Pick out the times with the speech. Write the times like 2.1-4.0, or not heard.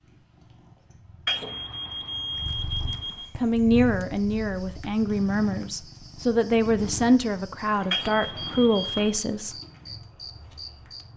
2.9-9.6.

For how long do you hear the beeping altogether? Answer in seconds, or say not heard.
3 s.